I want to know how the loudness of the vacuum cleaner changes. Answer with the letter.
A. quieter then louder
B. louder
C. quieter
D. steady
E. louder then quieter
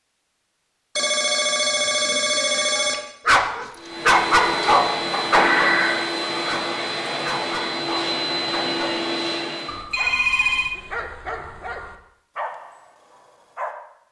D.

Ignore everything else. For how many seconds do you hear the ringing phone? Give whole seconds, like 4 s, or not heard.
4 s.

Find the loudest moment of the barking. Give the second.
4 s.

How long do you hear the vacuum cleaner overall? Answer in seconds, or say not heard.
6 s.